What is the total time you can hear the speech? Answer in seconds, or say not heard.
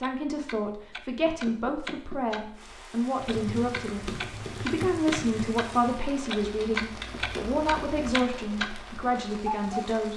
10 s.